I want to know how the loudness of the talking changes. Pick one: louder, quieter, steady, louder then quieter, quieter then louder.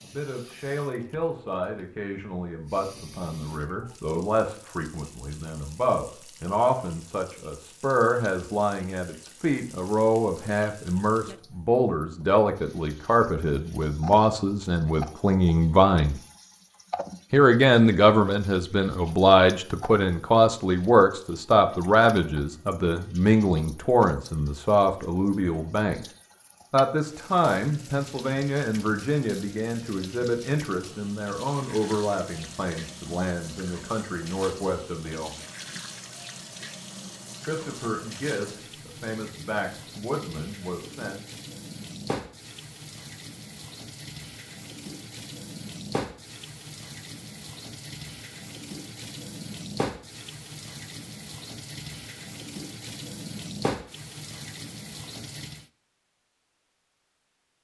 louder then quieter.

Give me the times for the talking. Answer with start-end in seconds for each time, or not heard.
0.0-16.2, 17.3-26.1, 26.7-35.4, 37.5-41.2.